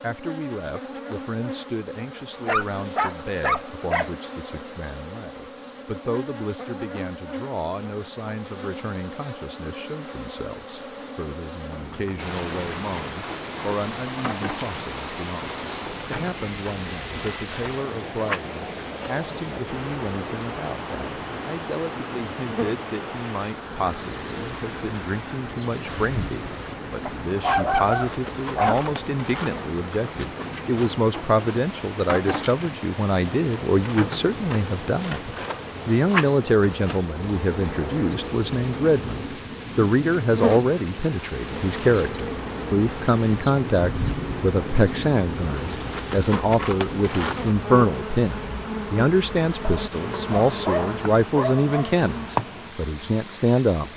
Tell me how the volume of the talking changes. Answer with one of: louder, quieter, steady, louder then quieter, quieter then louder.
louder.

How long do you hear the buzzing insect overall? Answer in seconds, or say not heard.
54 s.